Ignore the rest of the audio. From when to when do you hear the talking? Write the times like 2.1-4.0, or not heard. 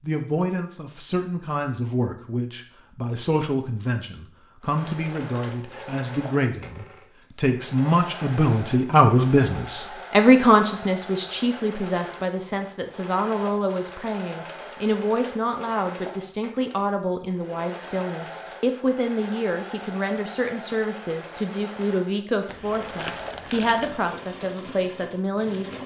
0.0-25.8.